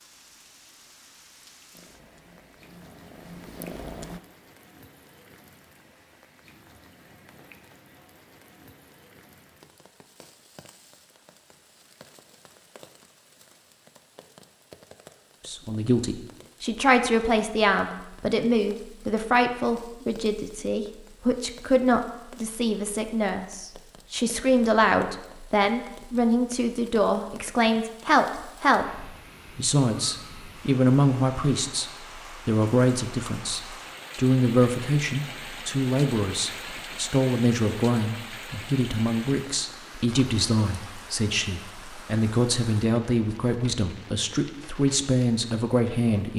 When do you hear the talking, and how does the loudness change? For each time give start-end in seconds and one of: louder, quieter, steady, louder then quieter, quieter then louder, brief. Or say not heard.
15.4-46.3 steady.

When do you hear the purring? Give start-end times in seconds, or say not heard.
1.7-4.2.